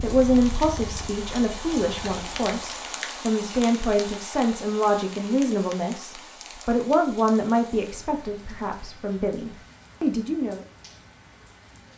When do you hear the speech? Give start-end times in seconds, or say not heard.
0.0-10.6.